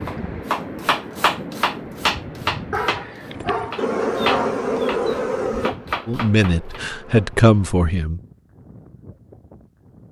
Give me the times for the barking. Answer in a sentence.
You can hear the barking from 2.7 to 4.7 s.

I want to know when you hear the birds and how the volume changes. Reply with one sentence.
The birds can't be heard in this clip.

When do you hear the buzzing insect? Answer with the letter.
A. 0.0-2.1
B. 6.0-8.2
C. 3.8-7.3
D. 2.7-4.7
C.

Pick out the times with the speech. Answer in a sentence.
The speech can be heard from 6.0 to 8.2 s.